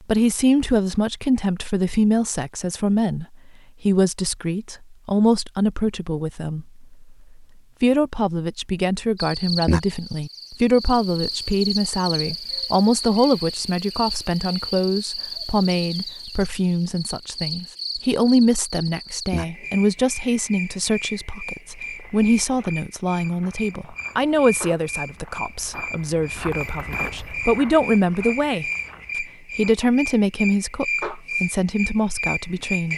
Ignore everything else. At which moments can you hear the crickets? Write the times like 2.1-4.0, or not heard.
9.2-32.9.